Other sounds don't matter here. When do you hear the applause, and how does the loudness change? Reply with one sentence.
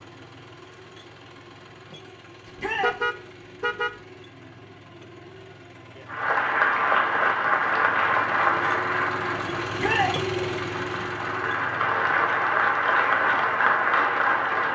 You can hear the applause from 6.0 to 14.6 s, getting quieter then louder.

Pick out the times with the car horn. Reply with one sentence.
You can hear the car horn from 2.8 to 4.0 s.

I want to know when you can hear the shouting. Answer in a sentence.
You can hear the shouting from 2.5 to 3.0 s and from 9.8 to 10.2 s.